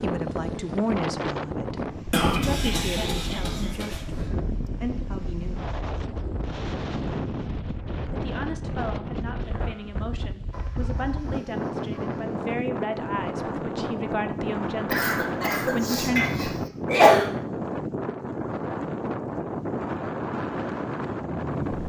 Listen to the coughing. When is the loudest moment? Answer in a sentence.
The loudest moment of the coughing is at 17 seconds.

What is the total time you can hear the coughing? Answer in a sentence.
You can hear the coughing for 4 seconds altogether.